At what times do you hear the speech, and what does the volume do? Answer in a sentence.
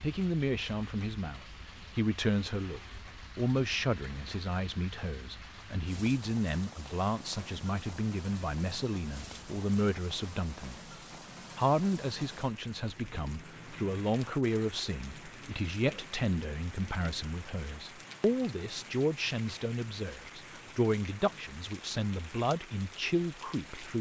The speech can be heard from 0.0 to 10.9 s, at a steady volume; and from 11.6 to 23.9 s, at a steady volume.